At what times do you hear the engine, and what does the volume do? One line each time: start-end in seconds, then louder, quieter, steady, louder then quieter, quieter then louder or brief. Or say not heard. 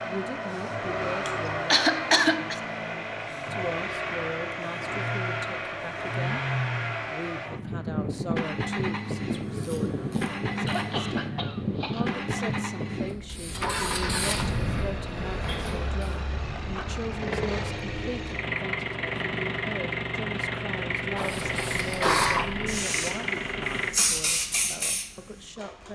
0.0-23.9 steady.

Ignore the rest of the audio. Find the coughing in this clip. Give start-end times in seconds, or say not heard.
1.2-2.5, 10.7-12.2, 21.1-22.5.